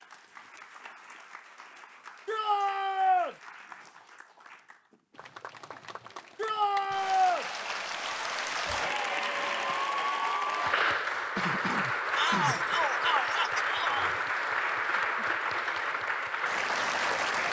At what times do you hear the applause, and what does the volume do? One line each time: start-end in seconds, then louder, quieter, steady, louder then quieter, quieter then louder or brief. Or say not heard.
0.0-17.4 louder.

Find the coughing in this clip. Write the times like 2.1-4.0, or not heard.
11.3-12.8.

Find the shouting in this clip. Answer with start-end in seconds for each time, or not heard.
2.2-3.4, 6.3-7.5, 12.2-14.2.